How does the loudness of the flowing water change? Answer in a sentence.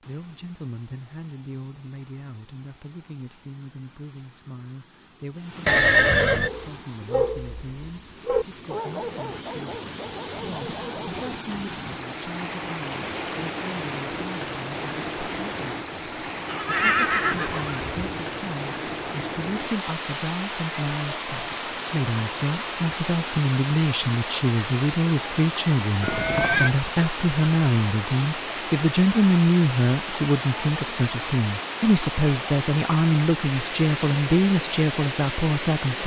The volume of the flowing water goes up.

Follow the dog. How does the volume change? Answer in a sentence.
The loudness of the dog goes down.